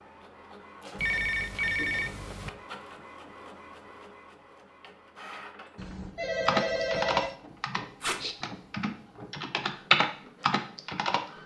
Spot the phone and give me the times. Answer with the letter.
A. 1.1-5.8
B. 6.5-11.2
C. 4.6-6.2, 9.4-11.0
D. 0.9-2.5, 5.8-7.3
D.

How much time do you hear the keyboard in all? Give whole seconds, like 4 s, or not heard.
5 s.